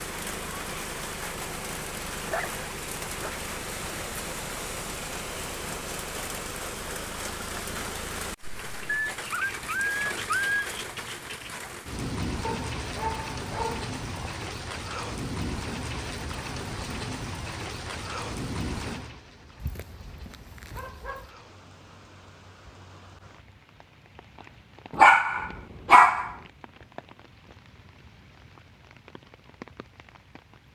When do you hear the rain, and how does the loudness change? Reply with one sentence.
The rain can be heard from 0.0 to 30.7 s, getting quieter.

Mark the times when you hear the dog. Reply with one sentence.
You can hear the dog from 2.2 to 3.4 s, from 9.1 to 10.7 s, from 12.4 to 14.3 s, from 19.6 to 21.3 s and from 24.9 to 26.3 s.